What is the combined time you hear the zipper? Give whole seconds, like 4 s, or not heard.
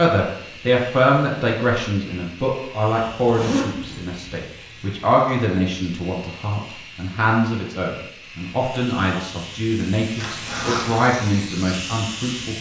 2 s.